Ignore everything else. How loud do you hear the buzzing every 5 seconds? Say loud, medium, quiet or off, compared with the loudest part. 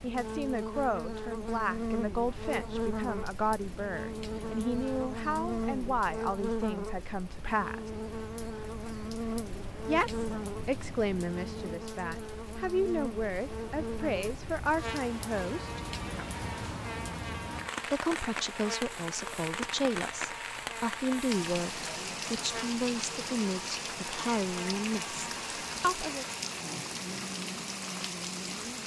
loud, loud, loud, medium, medium, medium.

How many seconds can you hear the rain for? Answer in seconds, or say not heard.
29 s.